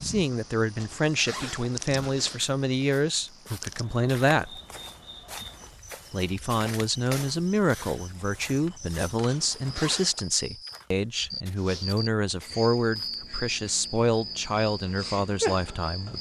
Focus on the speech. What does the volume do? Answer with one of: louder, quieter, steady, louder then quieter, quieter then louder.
steady.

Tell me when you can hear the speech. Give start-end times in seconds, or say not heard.
0.0-4.6, 6.1-16.1.